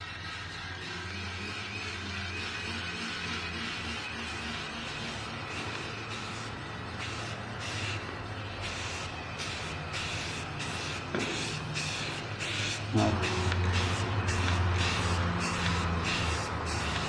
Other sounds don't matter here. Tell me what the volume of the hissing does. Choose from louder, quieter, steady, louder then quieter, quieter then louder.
louder.